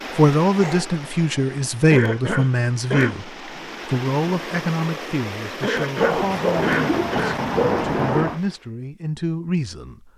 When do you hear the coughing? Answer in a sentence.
The coughing can be heard from 1.9 to 3.1 s and from 5.6 to 7.3 s.